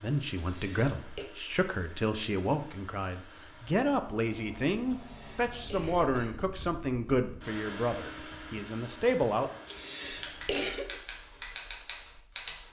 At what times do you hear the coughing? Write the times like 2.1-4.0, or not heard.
0.3-1.2, 4.8-6.3, 9.7-11.0.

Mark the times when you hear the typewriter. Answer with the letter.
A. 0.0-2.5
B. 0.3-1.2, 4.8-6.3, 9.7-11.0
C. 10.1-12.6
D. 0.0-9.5
C.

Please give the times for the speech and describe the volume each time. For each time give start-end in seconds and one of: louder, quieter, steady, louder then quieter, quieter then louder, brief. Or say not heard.
0.0-9.5 steady.